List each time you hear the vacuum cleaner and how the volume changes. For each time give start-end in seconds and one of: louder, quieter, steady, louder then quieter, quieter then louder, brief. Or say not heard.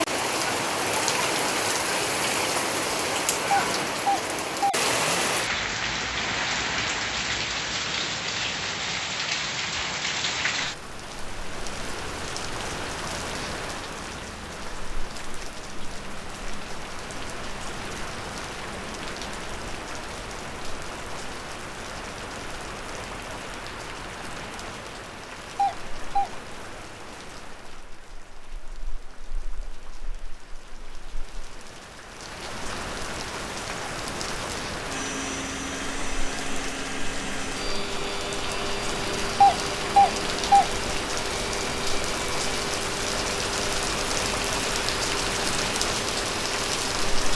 34.9-47.3 steady.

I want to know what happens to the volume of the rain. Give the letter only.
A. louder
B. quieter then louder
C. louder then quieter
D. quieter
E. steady
B.